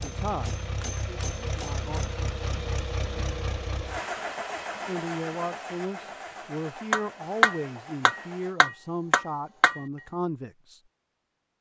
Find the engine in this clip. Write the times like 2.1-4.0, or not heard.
0.0-8.6.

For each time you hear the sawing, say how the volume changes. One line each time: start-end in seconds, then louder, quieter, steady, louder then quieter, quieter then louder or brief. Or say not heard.
not heard.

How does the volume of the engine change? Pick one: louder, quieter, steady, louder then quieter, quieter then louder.
quieter.